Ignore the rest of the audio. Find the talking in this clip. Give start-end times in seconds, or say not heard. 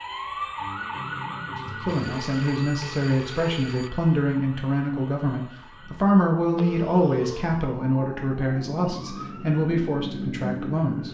1.4-11.0.